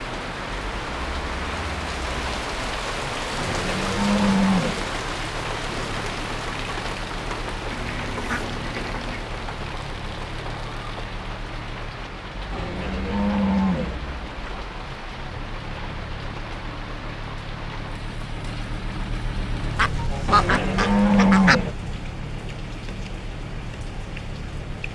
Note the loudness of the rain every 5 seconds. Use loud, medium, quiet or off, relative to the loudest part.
loud, loud, medium, medium, medium.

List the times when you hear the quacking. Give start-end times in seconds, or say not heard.
7.7-9.2, 19.8-21.6.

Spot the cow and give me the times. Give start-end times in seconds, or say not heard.
3.4-4.8, 12.5-13.9, 20.2-21.8.